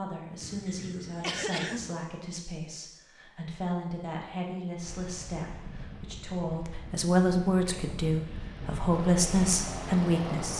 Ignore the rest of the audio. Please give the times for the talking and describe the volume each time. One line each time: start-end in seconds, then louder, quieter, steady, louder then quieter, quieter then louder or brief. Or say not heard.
0.0-10.5 louder.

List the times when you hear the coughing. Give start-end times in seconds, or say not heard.
0.4-1.9.